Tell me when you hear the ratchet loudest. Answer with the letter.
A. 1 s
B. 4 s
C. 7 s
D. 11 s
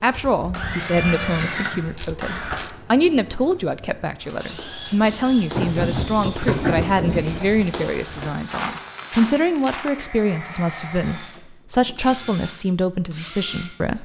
C.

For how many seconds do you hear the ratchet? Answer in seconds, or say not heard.
7 s.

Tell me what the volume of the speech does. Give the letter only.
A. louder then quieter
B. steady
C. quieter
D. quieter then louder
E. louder
B.